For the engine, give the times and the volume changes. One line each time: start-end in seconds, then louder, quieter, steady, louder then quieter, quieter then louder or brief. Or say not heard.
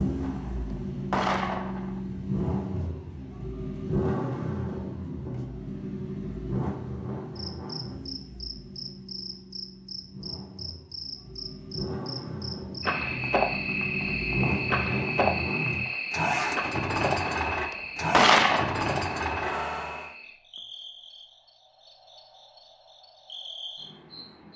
0.0-20.1 quieter then louder.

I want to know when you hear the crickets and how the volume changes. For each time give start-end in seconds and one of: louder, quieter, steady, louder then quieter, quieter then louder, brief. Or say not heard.
7.3-24.5 louder then quieter.